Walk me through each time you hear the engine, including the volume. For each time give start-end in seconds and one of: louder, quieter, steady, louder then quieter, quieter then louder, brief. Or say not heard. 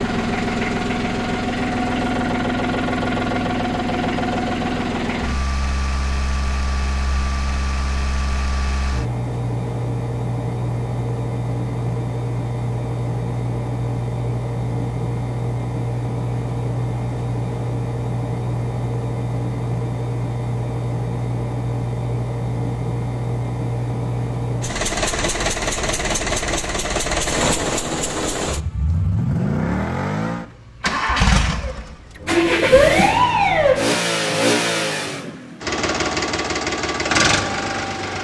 0.0-38.2 steady.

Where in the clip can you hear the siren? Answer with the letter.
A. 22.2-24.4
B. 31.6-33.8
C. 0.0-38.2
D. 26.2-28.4
B.